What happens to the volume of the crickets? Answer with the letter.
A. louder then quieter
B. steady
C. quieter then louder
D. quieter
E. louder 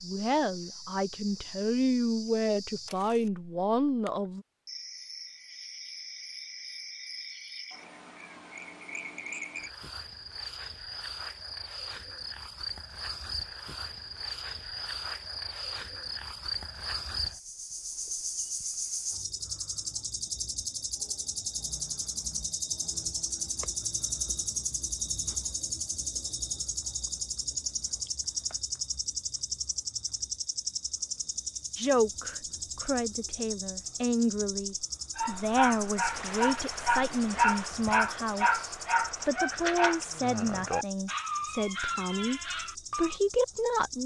A.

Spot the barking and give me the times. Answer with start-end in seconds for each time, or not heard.
35.1-43.2.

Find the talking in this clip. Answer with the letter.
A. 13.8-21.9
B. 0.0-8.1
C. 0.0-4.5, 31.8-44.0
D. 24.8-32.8
C.